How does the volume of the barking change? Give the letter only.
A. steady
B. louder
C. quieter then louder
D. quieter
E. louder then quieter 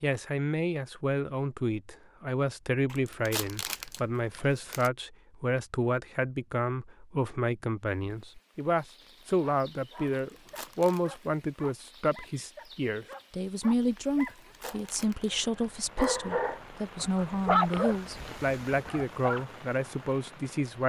E.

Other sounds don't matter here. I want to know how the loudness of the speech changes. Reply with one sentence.
The volume of the speech stays about the same.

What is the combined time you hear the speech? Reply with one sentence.
The speech can be heard for 21 seconds in total.